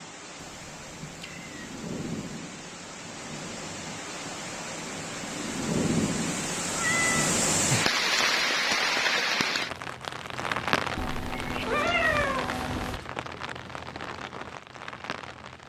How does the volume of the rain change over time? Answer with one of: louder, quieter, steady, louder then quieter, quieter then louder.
louder then quieter.